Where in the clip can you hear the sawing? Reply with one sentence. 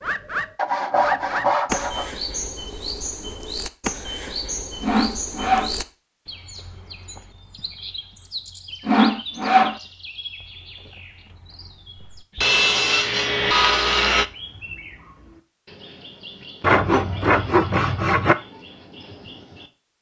The sawing can be heard from 0.6 to 2.1 s, from 4.8 to 5.8 s, from 8.8 to 9.8 s, from 12.3 to 14.2 s and from 16.6 to 18.4 s.